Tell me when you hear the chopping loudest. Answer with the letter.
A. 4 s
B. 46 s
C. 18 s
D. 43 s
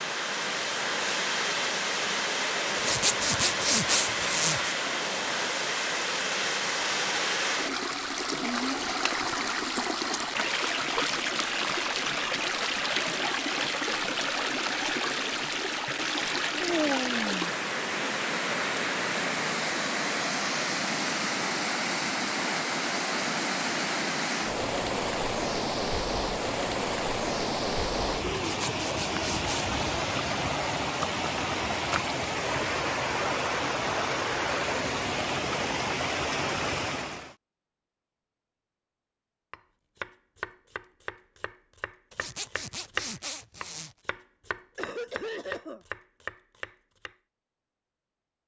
D.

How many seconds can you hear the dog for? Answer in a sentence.
You can't hear the dog here.